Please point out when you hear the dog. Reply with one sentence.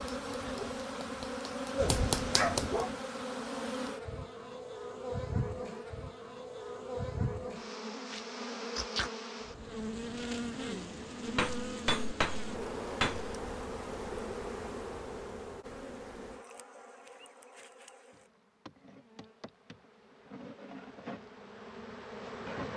You can hear the dog from 0.0 to 2.9 s.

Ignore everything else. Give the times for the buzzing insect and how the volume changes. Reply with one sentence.
You can hear the buzzing insect from 0.0 to 22.7 s, getting quieter.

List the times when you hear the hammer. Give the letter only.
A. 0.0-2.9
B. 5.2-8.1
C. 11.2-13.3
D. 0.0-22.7
C.